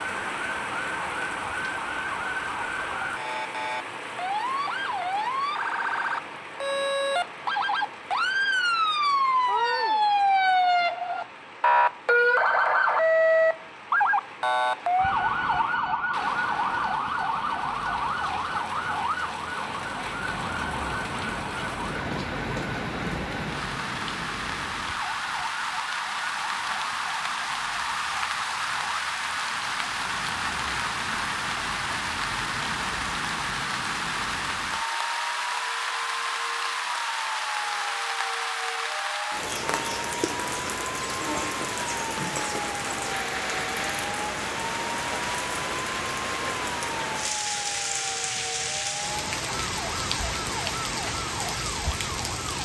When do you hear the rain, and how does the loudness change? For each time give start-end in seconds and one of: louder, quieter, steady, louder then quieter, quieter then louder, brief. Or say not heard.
0.0-52.5 louder.